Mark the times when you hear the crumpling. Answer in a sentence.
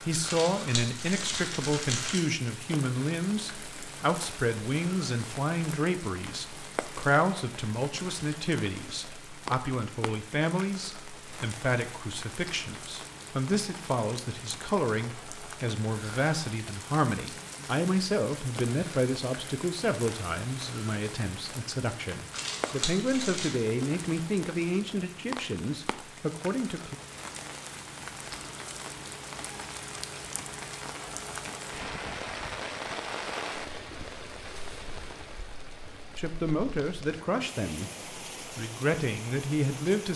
You can hear the crumpling from 0.2 to 2.2 s and from 22.3 to 23.6 s.